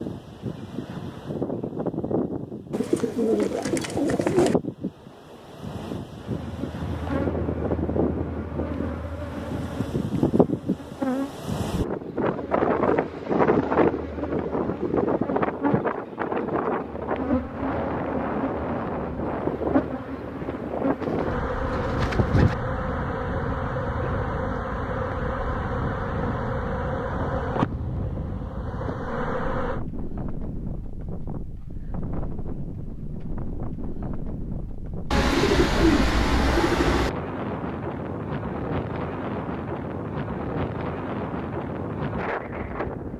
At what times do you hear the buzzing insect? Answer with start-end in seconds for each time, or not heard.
6.2-29.8.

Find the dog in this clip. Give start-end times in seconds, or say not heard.
not heard.